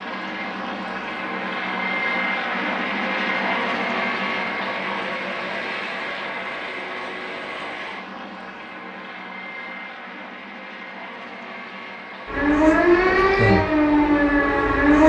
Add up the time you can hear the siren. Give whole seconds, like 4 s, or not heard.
3 s.